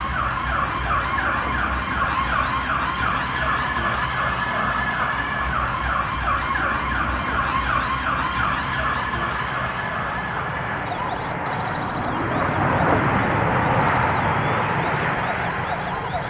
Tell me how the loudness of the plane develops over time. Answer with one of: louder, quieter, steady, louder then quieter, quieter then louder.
louder.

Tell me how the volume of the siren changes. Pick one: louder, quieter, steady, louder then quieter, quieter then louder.
quieter.